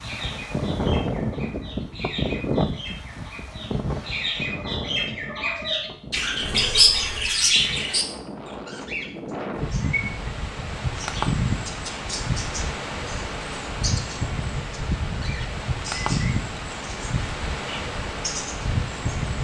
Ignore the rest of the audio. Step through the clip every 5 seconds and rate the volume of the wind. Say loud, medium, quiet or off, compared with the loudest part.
loud, medium, loud, loud.